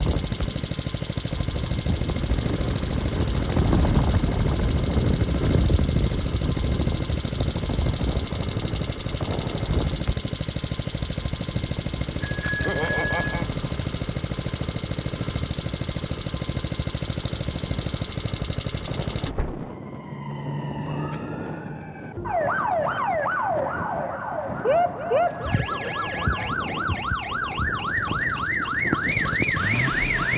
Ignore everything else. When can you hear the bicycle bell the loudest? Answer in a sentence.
The volume of the bicycle bell peaks at 13 seconds.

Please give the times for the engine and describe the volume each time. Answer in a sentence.
You can hear the engine from 0.0 to 19.4 s, at a steady volume; and briefly from 27.9 to 30.3 s.